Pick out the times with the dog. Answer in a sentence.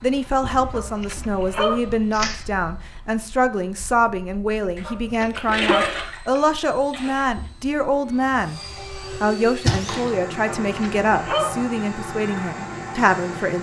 The dog can be heard from 0.7 to 1.9 s, from 4.8 to 6.0 s and from 10.4 to 11.7 s.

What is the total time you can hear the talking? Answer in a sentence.
The talking can be heard for 13 seconds in total.